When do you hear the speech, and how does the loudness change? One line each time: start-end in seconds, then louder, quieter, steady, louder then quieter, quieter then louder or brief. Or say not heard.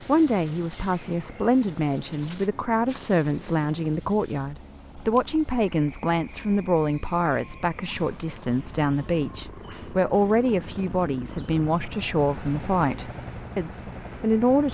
0.1-14.6 steady.